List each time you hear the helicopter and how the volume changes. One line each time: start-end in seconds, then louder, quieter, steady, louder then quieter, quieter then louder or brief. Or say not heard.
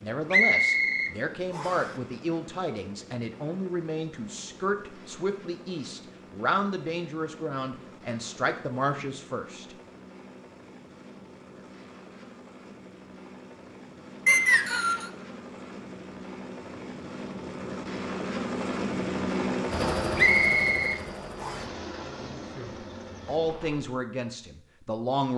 0.0-24.0 louder.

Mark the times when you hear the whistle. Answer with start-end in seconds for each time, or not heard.
0.3-1.9, 14.2-15.1, 20.1-21.6.